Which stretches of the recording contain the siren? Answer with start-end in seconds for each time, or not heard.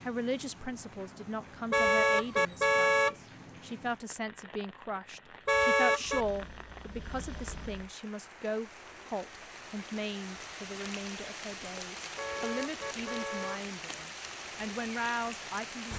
not heard.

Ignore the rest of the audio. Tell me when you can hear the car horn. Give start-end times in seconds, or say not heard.
1.7-3.1, 5.5-6.2, 12.2-13.6.